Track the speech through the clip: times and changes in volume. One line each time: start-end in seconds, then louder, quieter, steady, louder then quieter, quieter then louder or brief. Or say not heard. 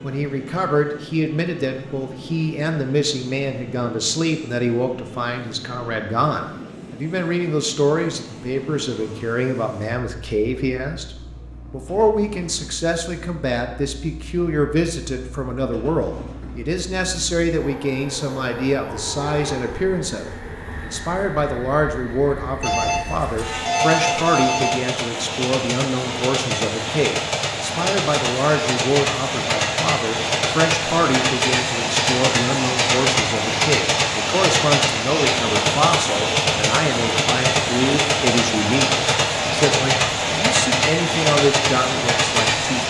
0.0-42.8 steady.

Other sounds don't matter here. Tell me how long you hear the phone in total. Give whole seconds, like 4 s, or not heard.
2 s.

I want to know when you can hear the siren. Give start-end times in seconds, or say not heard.
not heard.